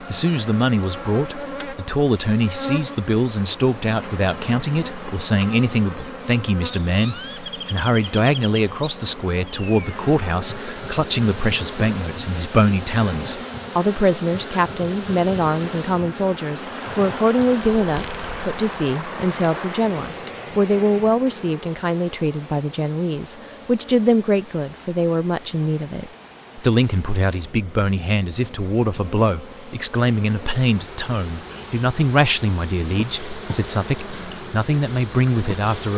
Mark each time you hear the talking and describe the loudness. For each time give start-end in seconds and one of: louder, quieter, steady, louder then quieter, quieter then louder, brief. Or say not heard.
0.1-35.9 steady.